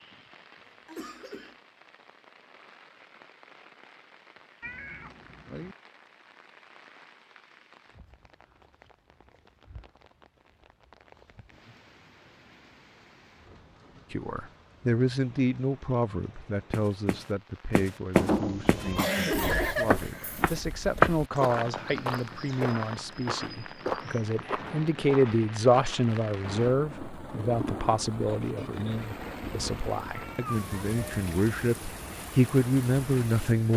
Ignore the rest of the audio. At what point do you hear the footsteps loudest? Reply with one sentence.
The volume of the footsteps peaks at 21 seconds.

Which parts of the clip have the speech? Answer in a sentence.
You can hear the speech from 14.1 to 33.7 s.